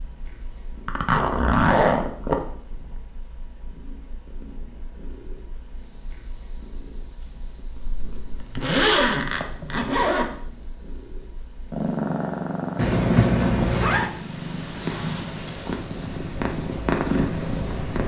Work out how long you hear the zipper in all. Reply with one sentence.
The zipper can be heard for 6 seconds in total.